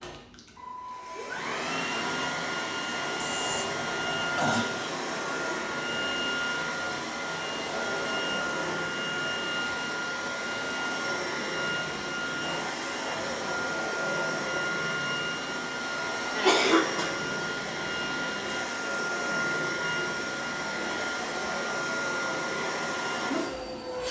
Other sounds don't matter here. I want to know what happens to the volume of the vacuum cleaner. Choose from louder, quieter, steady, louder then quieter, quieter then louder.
steady.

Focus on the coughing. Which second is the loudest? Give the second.
17 s.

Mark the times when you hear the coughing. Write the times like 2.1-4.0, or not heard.
3.2-4.7, 16.4-17.1.